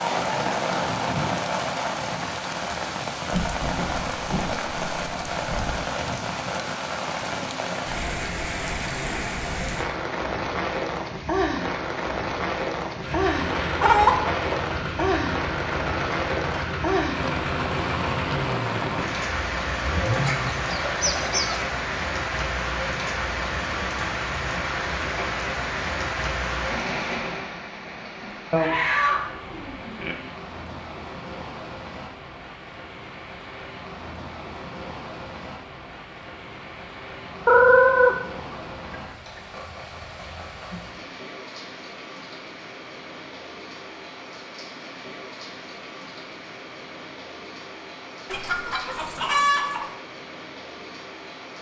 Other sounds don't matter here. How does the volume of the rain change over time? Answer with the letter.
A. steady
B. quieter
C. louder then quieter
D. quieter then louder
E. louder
B.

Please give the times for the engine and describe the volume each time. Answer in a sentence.
The engine can be heard from 13.0 to 20.5 s, at a steady volume.